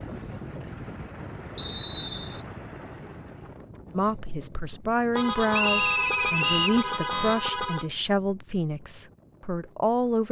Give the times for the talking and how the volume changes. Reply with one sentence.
You can hear the talking from 3.9 to 10.2 s, getting quieter.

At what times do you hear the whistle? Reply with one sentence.
You can hear the whistle from 1.6 to 2.4 s and from 5.5 to 6.8 s.